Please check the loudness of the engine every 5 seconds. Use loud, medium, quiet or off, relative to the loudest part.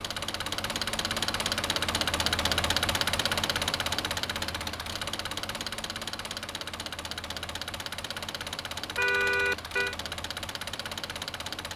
loud, medium, medium.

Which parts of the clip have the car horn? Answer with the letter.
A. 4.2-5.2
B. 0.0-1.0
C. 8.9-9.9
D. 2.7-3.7
C.